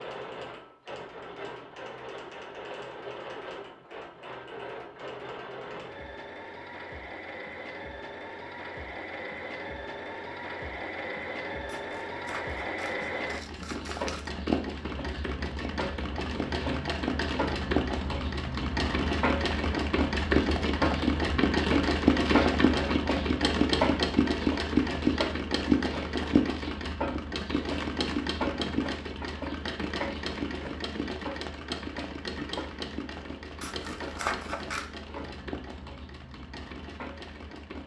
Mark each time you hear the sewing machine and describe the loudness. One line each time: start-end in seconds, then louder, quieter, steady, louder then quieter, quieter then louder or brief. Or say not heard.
0.0-37.8 louder then quieter.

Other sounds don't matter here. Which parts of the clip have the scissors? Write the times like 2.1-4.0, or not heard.
11.7-14.3, 33.6-34.9.